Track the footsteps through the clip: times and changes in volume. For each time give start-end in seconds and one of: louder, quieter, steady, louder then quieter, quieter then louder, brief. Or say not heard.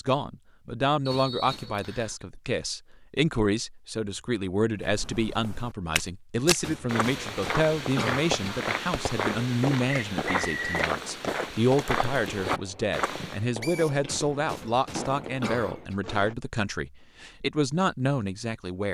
4.8-13.4 steady.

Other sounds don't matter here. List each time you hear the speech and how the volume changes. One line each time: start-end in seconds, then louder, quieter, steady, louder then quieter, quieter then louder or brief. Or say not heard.
0.0-18.8 steady.